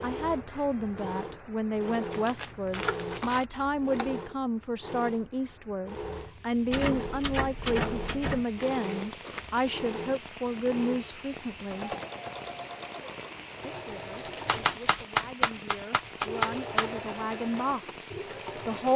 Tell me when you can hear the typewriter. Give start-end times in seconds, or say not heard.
2.7-4.2, 6.7-8.4, 14.4-16.9.